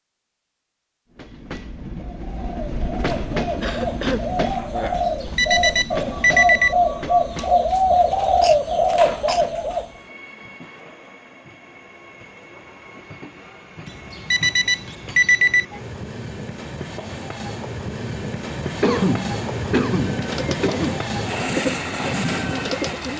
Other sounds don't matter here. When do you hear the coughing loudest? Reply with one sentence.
The loudest moment of the coughing is at 19 seconds.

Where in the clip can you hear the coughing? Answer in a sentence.
You can hear the coughing from 3.6 to 4.2 s, from 8.4 to 9.4 s and from 18.8 to 21.1 s.